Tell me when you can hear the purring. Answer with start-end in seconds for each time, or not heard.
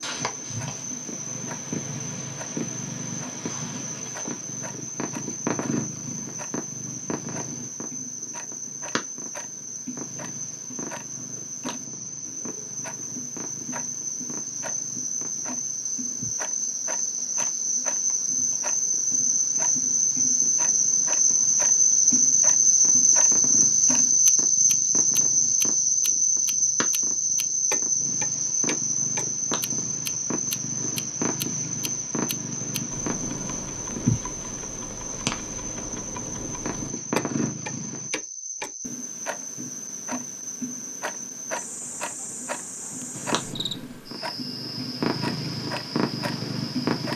0.0-38.1, 43.1-47.1.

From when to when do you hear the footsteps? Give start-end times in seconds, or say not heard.
not heard.